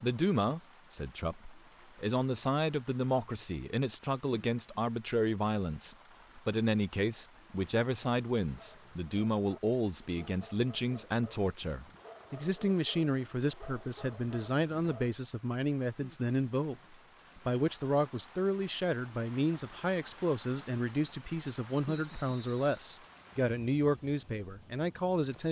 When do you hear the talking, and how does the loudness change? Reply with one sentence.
The talking can be heard from 0.0 to 25.4 s, at a steady volume.